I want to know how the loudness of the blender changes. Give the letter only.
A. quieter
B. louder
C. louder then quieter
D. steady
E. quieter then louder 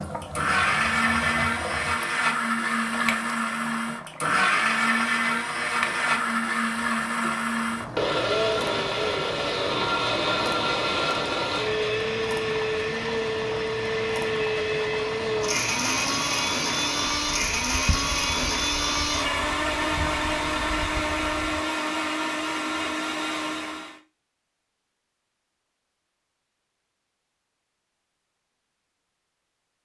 D.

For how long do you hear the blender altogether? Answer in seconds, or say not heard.
24 s.